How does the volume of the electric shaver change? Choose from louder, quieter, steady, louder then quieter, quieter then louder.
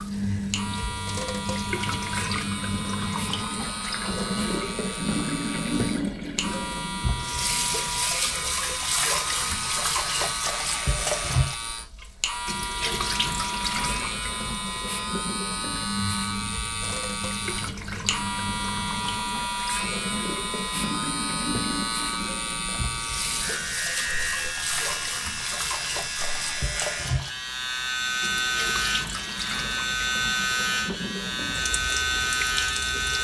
louder.